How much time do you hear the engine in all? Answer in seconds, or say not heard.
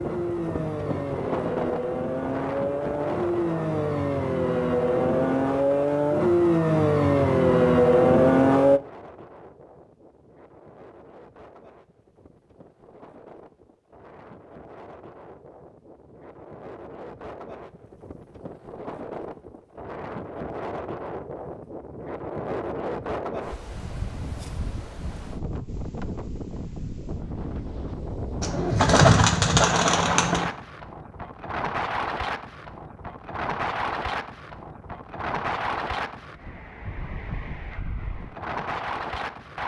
9 s.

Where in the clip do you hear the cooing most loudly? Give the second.
29 s.